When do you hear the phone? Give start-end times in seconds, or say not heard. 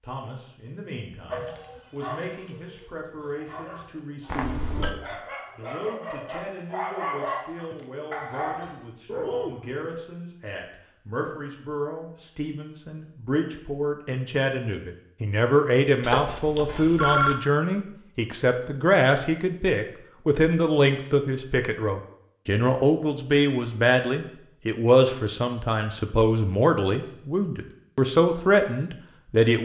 4.2-5.0, 16.0-17.4.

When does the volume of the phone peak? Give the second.
17 s.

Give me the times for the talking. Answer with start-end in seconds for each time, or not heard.
0.0-29.6.